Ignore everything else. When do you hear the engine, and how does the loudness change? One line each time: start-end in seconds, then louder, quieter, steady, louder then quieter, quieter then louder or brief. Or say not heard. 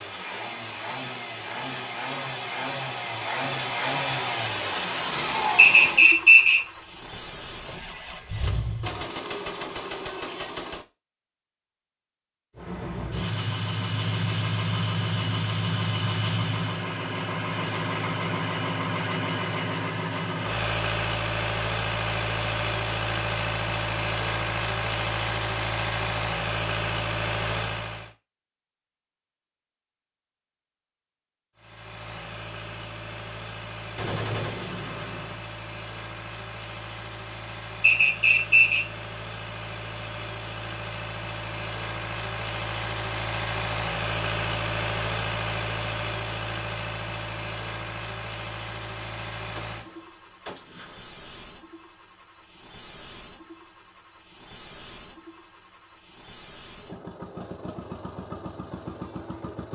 0.0-9.1 louder then quieter
12.6-28.1 steady
31.6-59.7 louder then quieter.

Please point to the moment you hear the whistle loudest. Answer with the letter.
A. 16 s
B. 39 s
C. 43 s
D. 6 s
D.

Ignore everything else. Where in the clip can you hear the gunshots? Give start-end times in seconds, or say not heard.
8.8-10.8, 34.0-35.4, 49.5-51.1.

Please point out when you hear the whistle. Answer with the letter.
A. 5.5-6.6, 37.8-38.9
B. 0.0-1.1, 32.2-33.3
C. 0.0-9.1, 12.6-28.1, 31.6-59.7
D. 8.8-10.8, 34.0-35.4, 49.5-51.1
A.